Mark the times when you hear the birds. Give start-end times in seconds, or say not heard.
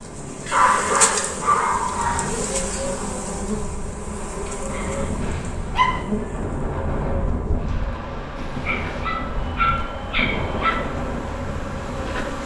not heard.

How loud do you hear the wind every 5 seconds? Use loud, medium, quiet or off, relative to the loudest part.
medium, loud, loud.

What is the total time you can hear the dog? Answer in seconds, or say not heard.
5 s.